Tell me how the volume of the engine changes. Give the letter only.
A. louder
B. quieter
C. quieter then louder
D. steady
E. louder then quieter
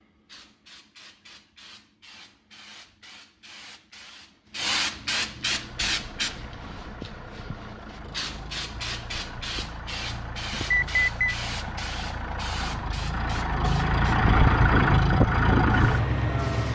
A.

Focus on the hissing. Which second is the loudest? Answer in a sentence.
The loudest moment of the hissing is at 5 seconds.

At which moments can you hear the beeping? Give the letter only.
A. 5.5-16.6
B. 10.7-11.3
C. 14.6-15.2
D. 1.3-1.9
B.